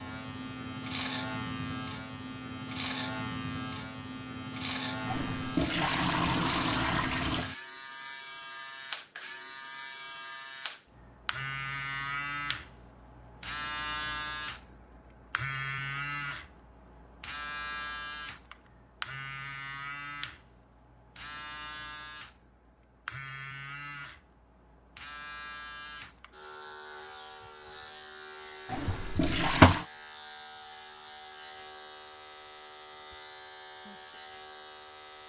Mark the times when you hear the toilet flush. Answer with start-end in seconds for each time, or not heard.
5.0-7.5, 28.6-29.9.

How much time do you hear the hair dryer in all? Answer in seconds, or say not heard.
not heard.